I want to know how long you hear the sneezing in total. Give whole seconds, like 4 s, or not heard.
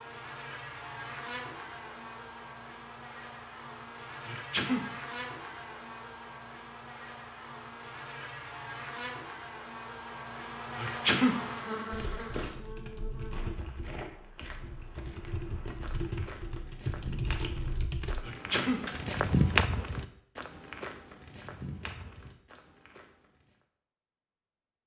2 s.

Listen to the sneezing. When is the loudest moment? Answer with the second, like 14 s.
11 s.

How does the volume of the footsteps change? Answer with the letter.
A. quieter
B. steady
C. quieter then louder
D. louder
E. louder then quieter
E.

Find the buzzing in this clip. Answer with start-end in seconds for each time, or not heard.
0.0-13.6.